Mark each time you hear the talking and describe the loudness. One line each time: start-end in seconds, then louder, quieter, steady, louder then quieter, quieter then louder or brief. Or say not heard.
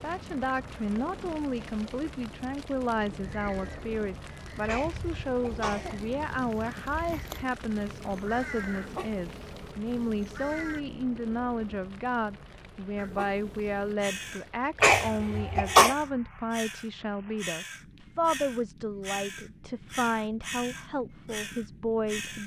0.0-22.4 steady.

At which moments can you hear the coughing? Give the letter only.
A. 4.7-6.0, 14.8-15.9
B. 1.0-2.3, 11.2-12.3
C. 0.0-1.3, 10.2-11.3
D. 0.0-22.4
A.